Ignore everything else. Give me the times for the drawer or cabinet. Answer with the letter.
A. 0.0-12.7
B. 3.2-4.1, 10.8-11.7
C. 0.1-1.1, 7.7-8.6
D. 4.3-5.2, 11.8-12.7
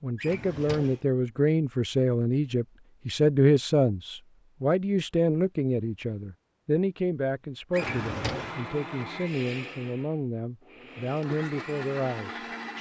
C.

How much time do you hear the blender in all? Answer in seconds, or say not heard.
5 s.